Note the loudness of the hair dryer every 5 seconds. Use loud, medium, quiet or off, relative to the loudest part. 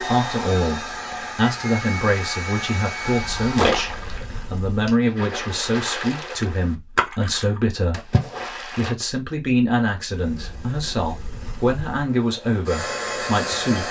loud, off, loud.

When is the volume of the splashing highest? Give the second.
4 s.